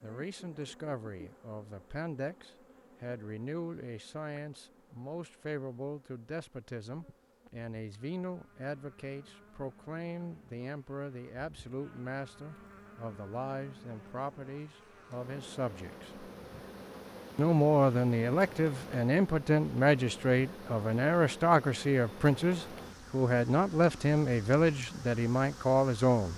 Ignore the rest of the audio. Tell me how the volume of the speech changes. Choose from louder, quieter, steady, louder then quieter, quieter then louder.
louder.